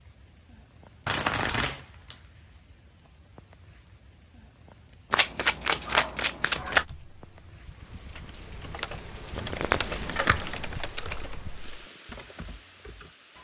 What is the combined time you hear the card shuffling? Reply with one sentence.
You can hear the card shuffling for 4 seconds altogether.